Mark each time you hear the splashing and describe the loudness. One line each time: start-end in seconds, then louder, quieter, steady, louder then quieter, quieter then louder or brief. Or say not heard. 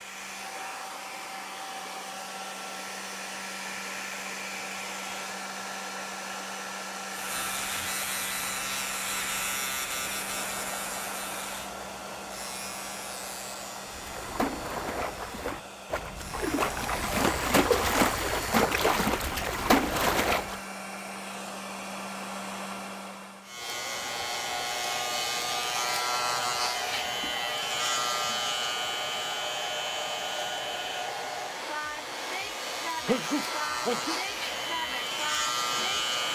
13.8-20.6 louder.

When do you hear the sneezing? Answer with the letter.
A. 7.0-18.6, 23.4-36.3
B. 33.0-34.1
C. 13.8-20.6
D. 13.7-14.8
B.